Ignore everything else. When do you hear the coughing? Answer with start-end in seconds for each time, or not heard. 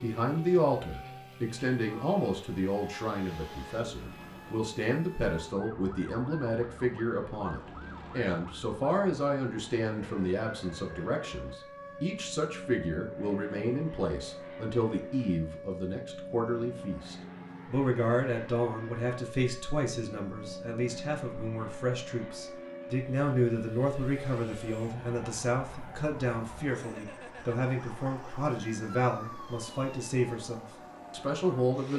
not heard.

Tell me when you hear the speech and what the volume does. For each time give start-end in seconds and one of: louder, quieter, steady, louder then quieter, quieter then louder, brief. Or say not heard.
0.0-31.9 steady.